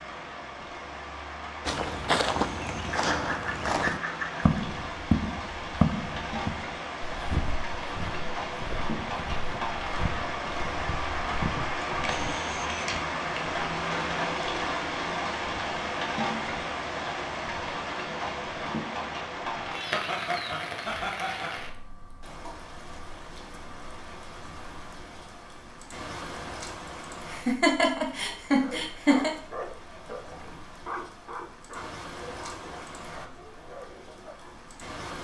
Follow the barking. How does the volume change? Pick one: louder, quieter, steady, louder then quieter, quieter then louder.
quieter.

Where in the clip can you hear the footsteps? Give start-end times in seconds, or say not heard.
1.6-12.3.